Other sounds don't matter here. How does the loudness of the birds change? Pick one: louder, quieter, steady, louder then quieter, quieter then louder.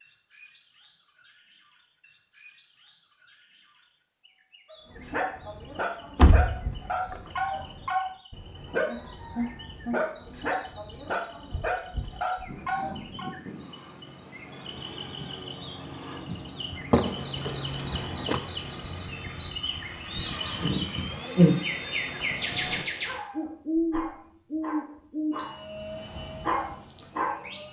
louder.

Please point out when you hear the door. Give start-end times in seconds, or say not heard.
6.2-7.2, 16.9-18.4.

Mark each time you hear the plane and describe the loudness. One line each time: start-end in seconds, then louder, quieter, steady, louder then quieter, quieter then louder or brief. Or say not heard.
12.4-22.9 louder
25.3-27.6 brief.